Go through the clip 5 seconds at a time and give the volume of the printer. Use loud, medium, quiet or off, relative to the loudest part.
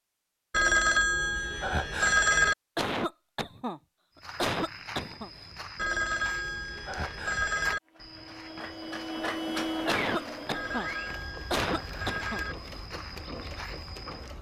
off, loud, medium.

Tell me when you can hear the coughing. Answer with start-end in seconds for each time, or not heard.
2.8-5.3, 9.8-10.9, 11.5-12.4.